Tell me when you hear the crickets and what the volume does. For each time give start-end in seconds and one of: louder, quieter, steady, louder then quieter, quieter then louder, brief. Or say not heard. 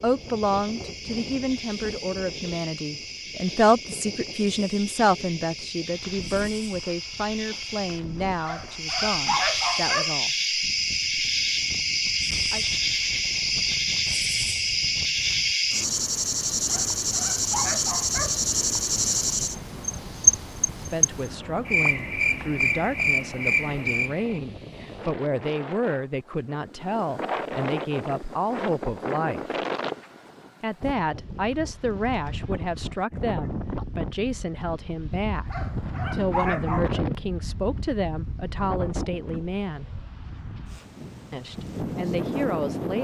0.0-24.4 louder.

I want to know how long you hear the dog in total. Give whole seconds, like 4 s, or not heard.
5 s.